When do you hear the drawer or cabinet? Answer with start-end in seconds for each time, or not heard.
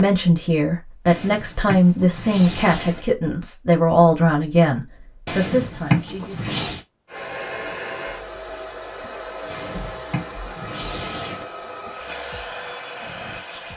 1.1-3.0, 5.2-6.8, 9.5-11.4.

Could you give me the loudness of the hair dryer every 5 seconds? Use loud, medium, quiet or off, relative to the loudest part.
off, loud, loud.